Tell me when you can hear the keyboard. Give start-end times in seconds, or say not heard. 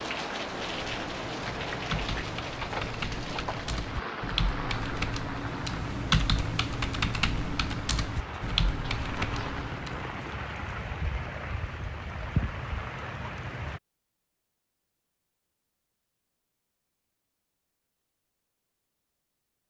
0.7-10.4.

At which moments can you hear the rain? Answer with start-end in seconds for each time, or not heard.
0.0-13.8.